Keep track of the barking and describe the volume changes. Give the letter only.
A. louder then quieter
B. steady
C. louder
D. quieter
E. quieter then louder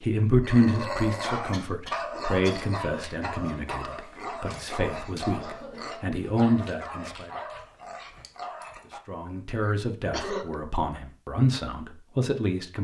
D.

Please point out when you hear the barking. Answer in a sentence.
The barking can be heard from 0.4 to 9.0 s.